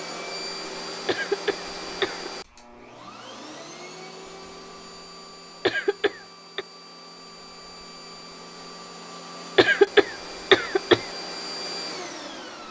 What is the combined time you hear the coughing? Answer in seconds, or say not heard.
4 s.